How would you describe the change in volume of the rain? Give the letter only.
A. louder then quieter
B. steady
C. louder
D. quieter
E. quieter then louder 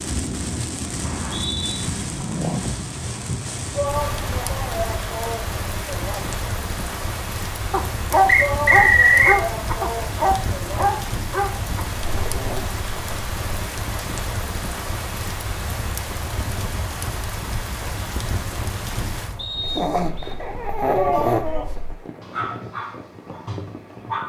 D.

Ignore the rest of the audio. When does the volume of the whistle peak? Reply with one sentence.
The volume of the whistle peaks at 9 seconds.